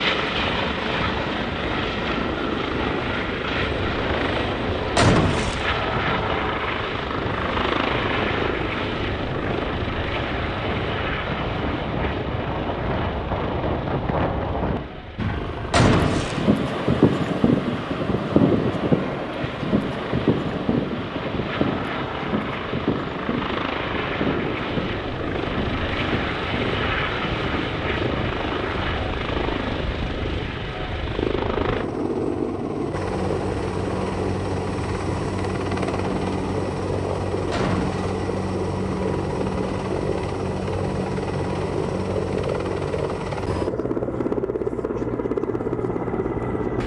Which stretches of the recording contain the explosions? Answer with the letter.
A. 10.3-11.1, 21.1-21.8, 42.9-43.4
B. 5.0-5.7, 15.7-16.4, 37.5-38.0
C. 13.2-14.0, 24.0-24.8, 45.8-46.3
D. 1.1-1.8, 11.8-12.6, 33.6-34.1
B.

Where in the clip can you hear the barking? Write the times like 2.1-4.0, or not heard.
not heard.